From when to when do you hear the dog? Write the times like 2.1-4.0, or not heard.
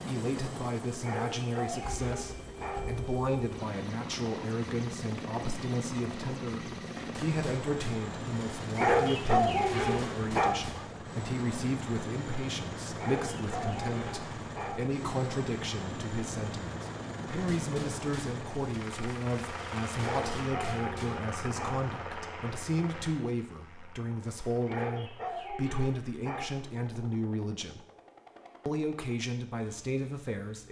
1.0-2.9, 8.8-10.6, 12.9-14.8, 19.9-21.9, 24.6-26.5.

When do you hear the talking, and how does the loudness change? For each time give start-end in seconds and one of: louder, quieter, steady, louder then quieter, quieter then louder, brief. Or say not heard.
0.1-27.8 steady
28.6-30.6 brief.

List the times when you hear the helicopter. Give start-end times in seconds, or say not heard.
0.0-30.6.